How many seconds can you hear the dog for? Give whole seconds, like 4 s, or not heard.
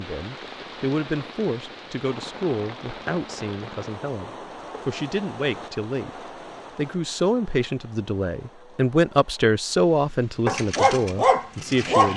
2 s.